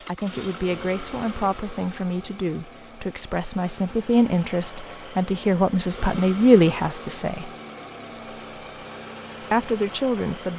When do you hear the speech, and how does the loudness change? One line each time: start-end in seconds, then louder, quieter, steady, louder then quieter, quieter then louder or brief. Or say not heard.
0.0-7.5 louder
9.5-10.5 brief.